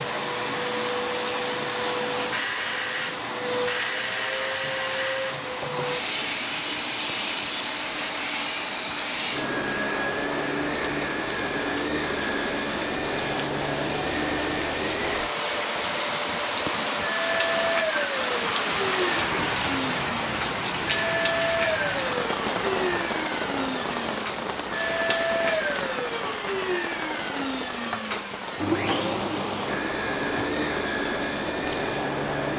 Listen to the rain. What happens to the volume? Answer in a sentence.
The loudness of the rain goes up, then down.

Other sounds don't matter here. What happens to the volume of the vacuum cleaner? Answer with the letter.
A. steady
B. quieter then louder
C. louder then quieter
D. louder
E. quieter
A.